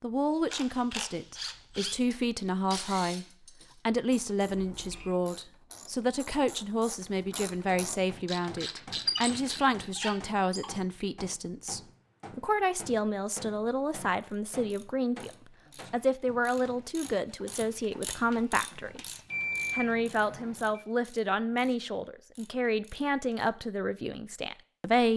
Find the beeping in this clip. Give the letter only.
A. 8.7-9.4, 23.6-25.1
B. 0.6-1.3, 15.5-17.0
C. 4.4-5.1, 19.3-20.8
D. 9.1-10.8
C.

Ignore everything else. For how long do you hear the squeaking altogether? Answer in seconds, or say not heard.
2 s.